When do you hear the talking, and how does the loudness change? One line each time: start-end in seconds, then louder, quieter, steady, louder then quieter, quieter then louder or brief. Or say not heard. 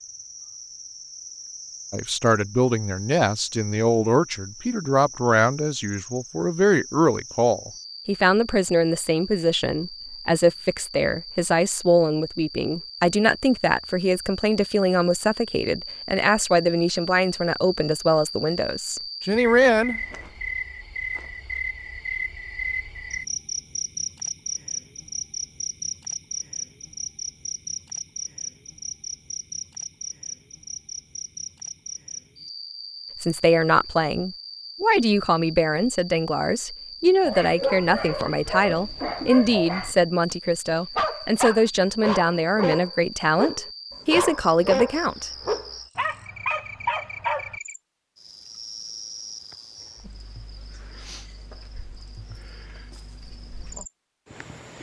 1.9-20.0 steady
33.2-45.3 steady.